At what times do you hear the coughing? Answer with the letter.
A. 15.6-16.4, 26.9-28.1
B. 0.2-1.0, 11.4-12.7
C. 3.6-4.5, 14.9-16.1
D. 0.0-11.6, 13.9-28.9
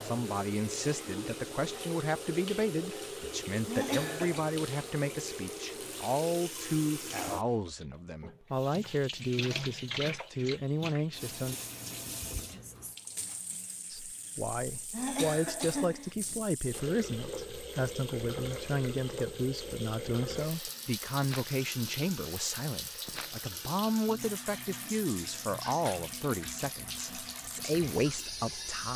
C.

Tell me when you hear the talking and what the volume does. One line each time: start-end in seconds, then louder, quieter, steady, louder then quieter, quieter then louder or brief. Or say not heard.
0.0-11.6 steady
13.9-28.9 steady.